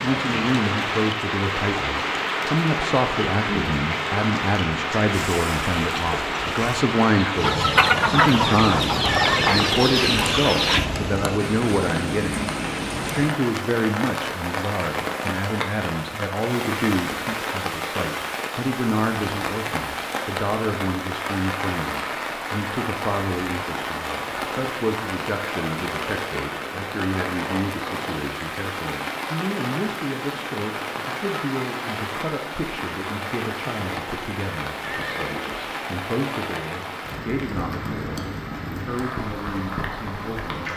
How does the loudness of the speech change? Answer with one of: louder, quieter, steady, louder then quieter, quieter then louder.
quieter.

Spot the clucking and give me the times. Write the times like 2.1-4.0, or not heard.
5.1-10.8.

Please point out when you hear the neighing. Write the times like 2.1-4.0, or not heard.
9.1-10.9, 34.9-35.9.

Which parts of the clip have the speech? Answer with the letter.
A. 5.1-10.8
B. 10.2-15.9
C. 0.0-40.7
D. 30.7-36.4
C.